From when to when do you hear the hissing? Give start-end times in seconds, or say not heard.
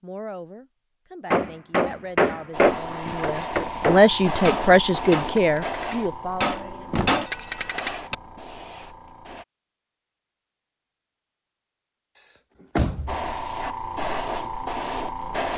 2.5-9.4, 13.1-15.5.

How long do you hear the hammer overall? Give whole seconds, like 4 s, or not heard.
7 s.